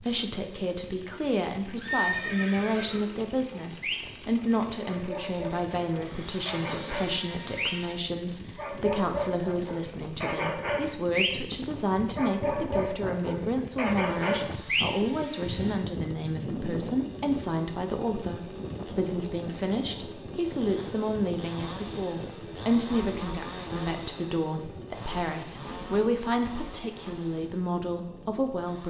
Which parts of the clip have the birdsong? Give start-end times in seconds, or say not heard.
not heard.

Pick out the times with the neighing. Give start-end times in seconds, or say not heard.
1.8-3.2.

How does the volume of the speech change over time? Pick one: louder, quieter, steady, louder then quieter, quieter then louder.
steady.